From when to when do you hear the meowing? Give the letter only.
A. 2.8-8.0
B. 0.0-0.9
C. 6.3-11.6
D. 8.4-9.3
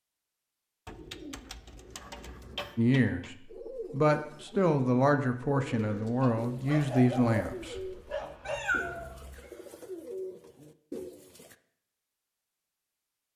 D.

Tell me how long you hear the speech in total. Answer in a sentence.
The speech can be heard for 5 seconds in total.